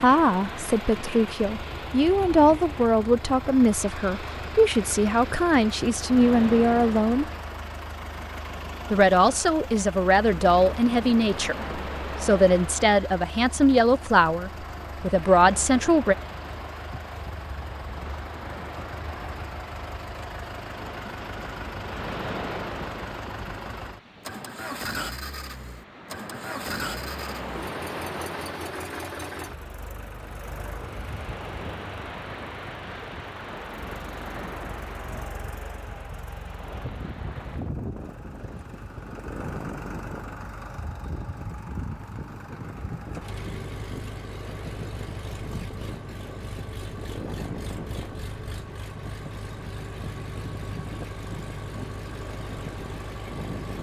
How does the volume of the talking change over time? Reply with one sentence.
The volume of the talking stays about the same.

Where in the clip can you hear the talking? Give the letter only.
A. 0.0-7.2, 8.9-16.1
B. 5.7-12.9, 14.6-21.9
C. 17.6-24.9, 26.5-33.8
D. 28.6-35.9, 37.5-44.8
A.